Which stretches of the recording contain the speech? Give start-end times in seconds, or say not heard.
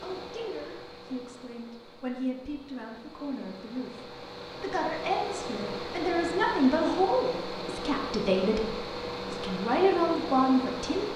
0.0-11.1.